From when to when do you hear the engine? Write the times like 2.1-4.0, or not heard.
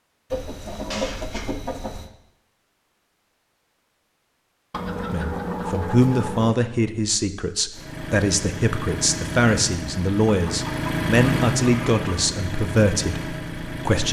7.7-14.0.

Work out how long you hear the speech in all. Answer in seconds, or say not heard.
9 s.